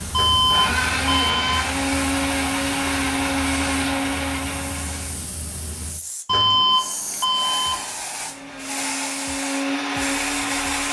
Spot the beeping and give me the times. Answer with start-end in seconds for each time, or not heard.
0.1-1.7, 6.2-7.8.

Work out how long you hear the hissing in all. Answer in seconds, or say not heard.
11 s.